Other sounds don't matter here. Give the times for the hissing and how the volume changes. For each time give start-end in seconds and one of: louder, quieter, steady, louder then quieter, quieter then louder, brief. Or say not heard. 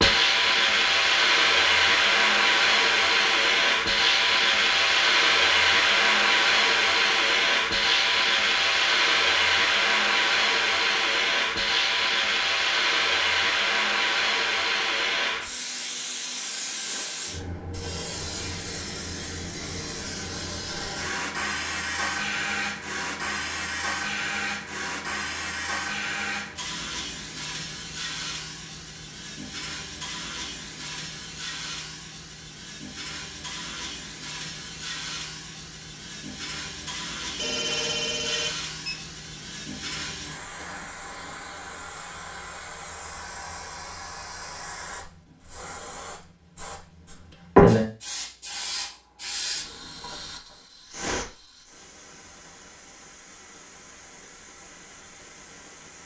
0.0-56.0 quieter then louder.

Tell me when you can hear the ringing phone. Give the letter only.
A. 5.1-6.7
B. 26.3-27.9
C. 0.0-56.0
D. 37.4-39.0
D.